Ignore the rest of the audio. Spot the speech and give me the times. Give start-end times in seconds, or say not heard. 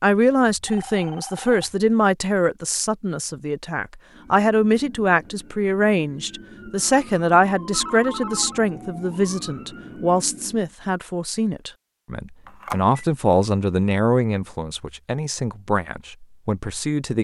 0.0-17.1.